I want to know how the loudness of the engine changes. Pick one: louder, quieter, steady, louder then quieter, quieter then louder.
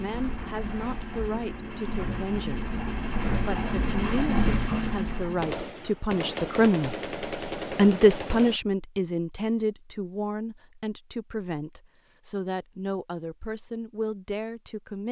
louder.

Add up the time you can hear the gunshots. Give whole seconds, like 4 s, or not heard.
3 s.